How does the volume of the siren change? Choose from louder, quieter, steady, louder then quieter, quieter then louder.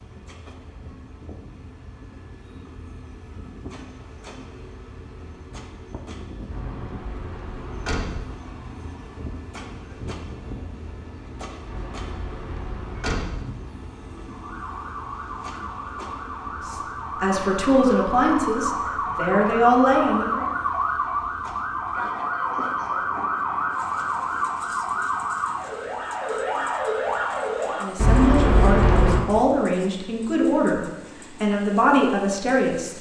louder.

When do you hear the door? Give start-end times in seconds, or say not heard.
6.5-8.2, 11.7-13.4, 27.9-29.2.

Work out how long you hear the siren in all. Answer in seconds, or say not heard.
14 s.